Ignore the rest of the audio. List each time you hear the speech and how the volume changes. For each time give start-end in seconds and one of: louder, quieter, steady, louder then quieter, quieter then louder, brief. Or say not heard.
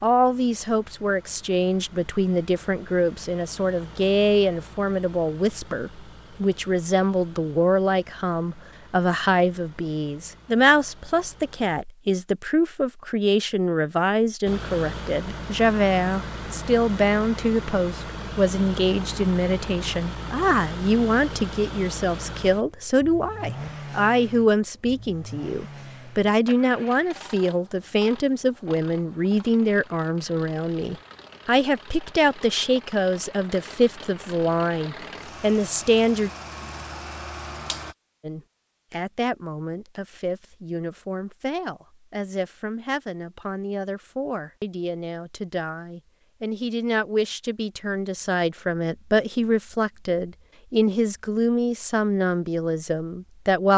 0.0-36.3 steady
38.2-53.7 louder.